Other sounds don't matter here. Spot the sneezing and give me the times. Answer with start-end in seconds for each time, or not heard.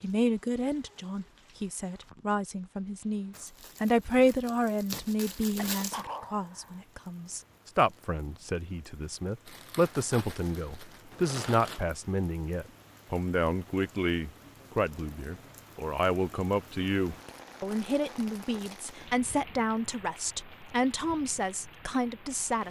5.7-6.8.